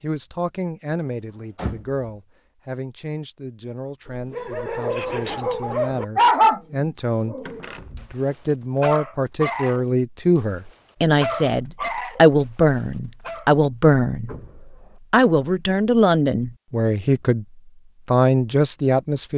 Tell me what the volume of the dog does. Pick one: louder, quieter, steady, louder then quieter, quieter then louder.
louder then quieter.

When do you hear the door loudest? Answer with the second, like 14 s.
2 s.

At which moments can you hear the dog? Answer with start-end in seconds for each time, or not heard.
4.0-13.4.